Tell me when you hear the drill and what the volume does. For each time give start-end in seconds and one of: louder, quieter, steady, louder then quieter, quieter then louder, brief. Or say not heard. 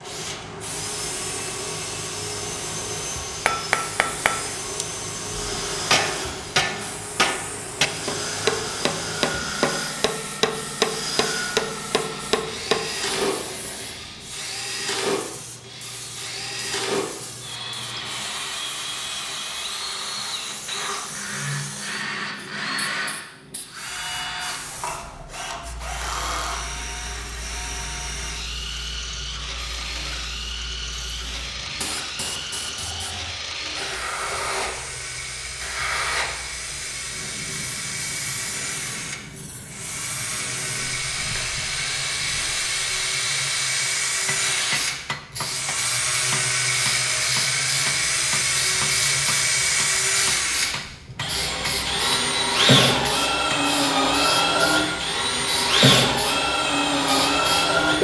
0.0-57.9 louder.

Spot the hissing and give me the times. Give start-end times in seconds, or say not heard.
0.0-57.8.